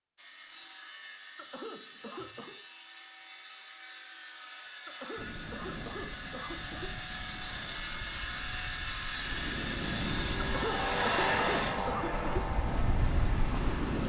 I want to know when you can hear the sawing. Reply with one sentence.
The sawing can be heard from 0.1 to 11.8 s.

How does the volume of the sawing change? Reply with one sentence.
The volume of the sawing goes up.